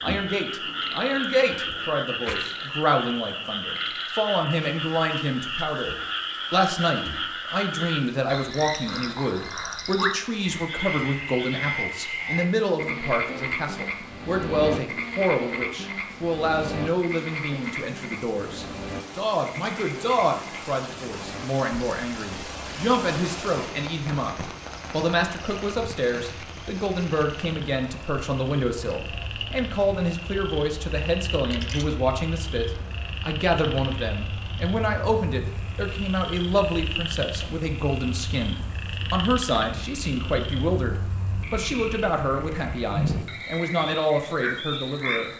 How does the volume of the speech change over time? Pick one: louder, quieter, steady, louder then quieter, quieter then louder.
steady.